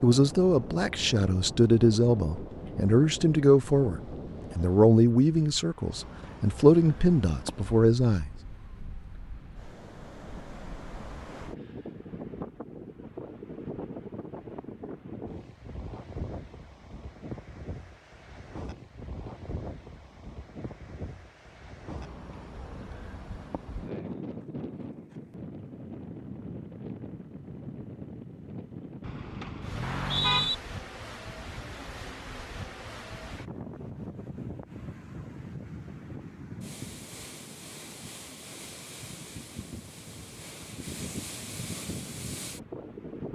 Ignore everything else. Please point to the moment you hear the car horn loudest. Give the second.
30 s.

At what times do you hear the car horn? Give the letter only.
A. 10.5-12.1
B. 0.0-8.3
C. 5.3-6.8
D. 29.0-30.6
D.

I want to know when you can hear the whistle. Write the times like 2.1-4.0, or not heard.
29.8-30.6.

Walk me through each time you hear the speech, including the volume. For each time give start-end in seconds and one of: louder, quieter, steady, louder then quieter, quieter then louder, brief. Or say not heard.
0.0-8.3 steady.